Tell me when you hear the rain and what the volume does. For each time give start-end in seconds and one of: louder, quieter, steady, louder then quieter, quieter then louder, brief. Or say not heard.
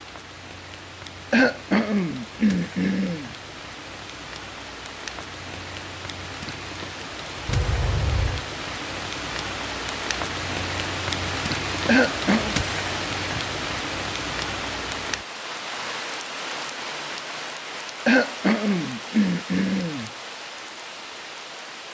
0.0-21.9 louder then quieter.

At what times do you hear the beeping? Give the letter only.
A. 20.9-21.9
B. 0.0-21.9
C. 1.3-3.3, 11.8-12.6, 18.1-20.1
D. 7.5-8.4
D.